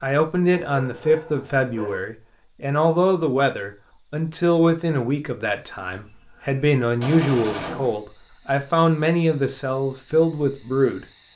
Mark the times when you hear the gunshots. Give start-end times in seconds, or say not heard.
7.0-8.0.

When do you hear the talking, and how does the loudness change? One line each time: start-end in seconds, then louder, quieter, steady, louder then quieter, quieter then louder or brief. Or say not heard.
0.0-11.1 steady.